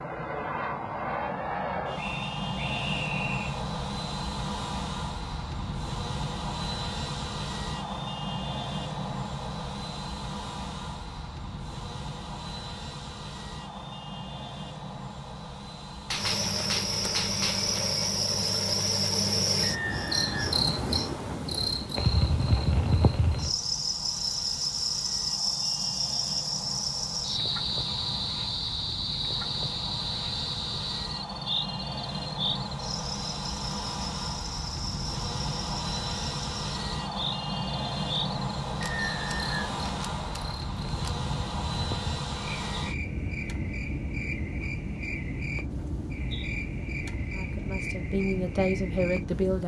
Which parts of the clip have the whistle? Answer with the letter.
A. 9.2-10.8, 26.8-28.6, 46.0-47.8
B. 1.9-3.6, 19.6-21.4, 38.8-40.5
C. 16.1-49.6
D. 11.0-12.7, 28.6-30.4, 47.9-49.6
B.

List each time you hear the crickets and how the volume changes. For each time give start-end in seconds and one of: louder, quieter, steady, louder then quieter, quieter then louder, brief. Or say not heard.
16.1-49.6 quieter.